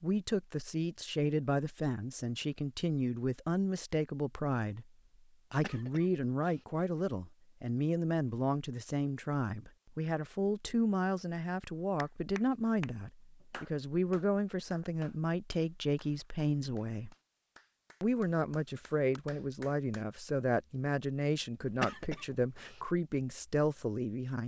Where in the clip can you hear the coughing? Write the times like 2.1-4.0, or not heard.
5.5-6.7, 21.6-22.8.